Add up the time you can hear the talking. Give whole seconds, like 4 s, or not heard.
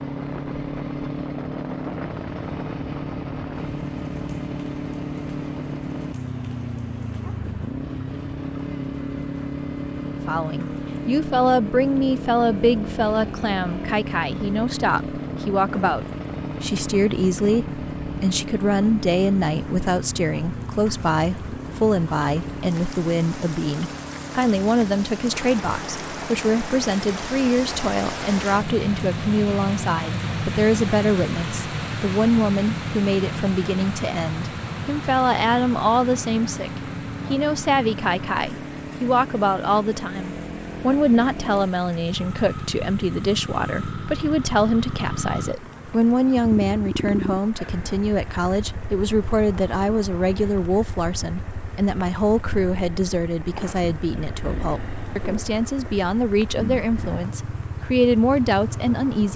49 s.